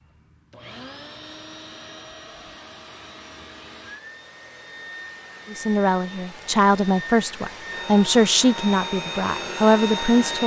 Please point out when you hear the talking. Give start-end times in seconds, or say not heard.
5.5-10.4.